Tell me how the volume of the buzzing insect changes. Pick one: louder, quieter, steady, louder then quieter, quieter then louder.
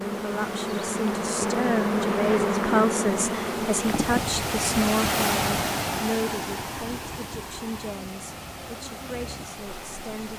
quieter.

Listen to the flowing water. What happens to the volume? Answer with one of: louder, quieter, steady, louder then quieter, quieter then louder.
louder then quieter.